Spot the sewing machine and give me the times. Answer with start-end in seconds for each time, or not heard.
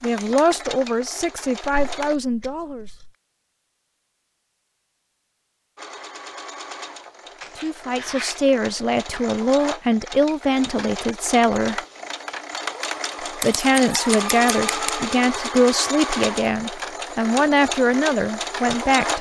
0.0-2.1, 5.8-19.1.